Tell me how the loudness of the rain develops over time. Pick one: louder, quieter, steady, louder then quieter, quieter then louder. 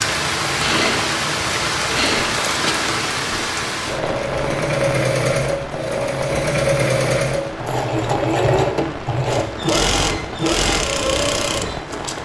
quieter.